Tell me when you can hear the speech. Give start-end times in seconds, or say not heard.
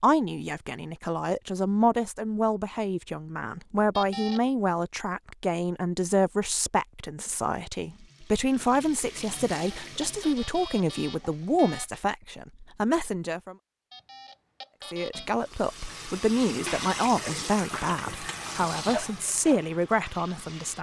0.0-13.6, 14.9-20.7.